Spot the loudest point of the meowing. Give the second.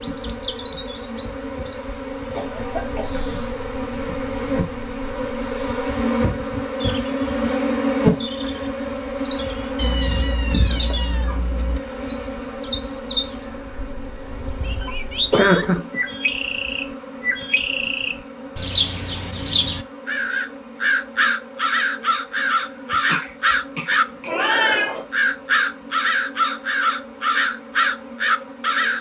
25 s.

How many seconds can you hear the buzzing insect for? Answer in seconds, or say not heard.
29 s.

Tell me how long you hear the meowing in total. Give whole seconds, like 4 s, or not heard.
3 s.